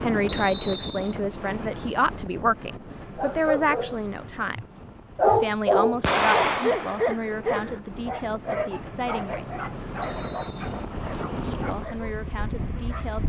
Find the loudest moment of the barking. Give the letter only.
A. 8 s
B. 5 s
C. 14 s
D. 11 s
B.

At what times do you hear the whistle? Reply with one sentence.
The whistle can be heard from 0.2 to 1.1 s and from 10.0 to 10.8 s.